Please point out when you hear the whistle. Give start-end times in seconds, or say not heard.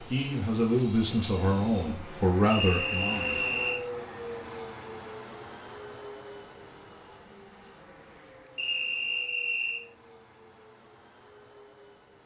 2.5-3.8, 8.6-9.8.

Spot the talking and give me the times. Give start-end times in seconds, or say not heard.
0.0-3.5.